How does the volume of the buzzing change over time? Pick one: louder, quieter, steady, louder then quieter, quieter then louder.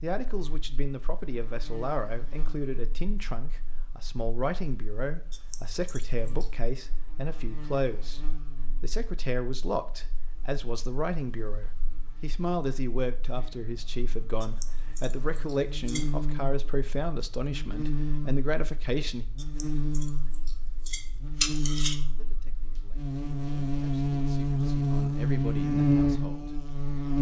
louder.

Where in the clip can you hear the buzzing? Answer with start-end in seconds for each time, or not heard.
0.2-27.1.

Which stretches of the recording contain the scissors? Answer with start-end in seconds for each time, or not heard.
5.3-6.5, 14.4-16.1, 19.4-21.9.